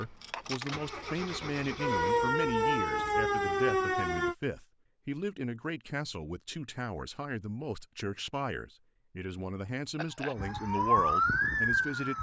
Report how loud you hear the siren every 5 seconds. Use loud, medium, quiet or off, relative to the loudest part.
loud, off, loud.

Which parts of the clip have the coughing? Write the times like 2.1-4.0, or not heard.
9.9-10.3.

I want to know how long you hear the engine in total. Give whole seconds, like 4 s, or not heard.
2 s.